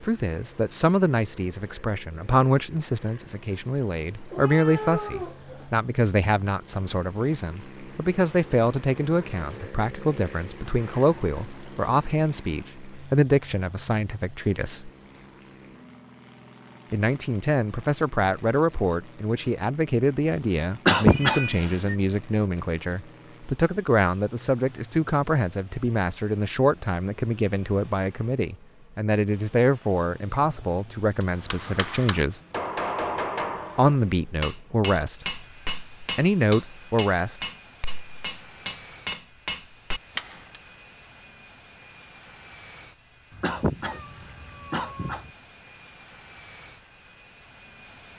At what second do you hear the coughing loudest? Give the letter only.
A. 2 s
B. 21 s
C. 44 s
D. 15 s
B.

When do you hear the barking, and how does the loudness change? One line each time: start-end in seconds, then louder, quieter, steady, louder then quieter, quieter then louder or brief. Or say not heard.
not heard.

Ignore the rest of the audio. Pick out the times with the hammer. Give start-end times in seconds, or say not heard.
31.2-40.6.